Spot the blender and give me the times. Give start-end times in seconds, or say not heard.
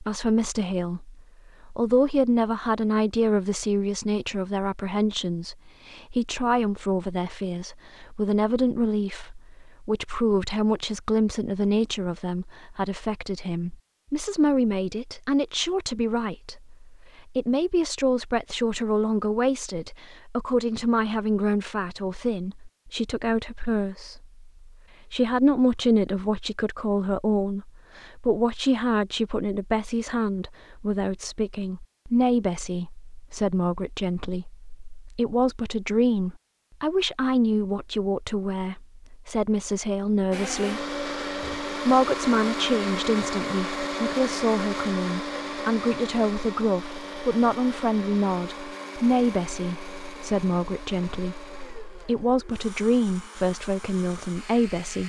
40.3-55.0.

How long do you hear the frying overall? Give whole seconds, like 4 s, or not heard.
not heard.